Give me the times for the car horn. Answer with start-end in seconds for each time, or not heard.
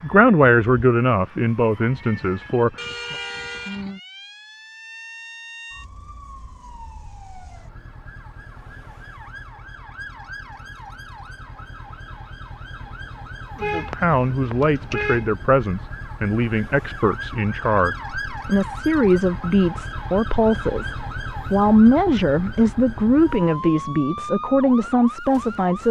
2.8-3.9, 13.6-15.3.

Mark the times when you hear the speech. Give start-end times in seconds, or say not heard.
0.0-3.1, 13.6-25.8.